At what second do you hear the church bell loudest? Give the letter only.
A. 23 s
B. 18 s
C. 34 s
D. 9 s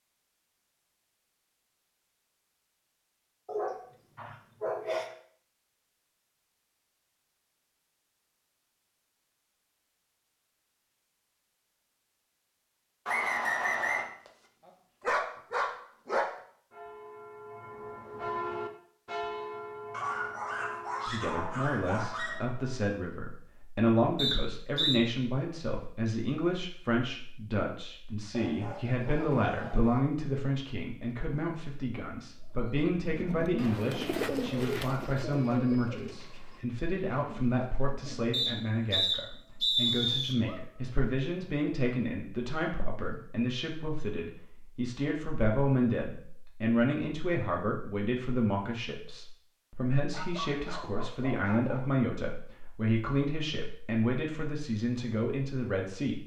B.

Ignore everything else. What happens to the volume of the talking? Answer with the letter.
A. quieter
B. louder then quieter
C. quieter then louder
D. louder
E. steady
E.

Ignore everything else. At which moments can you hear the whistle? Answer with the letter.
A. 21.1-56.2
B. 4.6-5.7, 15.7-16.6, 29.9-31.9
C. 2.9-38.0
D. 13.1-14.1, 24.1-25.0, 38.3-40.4
D.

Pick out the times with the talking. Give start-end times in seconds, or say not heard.
21.1-56.2.